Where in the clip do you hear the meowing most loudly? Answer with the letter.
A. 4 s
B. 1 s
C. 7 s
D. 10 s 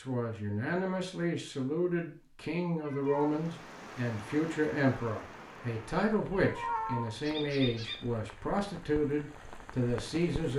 C.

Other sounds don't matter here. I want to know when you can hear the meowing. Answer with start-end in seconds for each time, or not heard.
2.8-3.4, 6.3-7.2.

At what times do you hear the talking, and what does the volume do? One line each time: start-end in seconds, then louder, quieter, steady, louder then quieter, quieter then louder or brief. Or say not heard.
0.0-10.5 steady.